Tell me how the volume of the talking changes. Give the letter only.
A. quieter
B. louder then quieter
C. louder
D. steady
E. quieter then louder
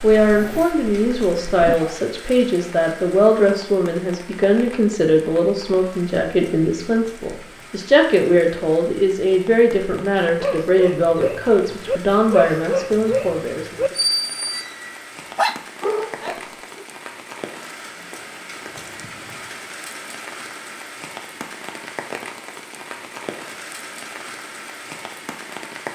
D.